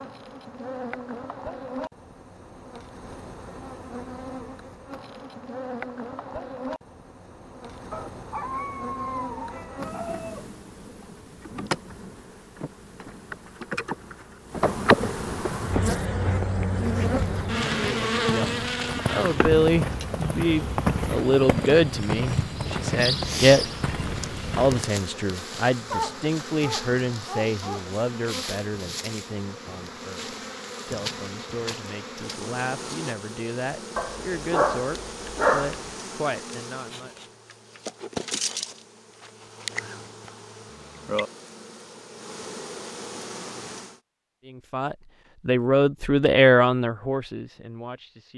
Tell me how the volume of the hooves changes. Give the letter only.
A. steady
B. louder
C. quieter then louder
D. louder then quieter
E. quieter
B.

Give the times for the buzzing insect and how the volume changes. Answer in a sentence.
You can hear the buzzing insect from 0.0 to 44.0 s, getting louder then quieter.